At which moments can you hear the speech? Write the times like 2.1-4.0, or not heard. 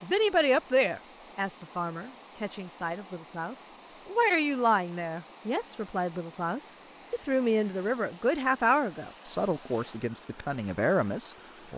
0.0-11.7.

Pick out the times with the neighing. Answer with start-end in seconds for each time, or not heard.
not heard.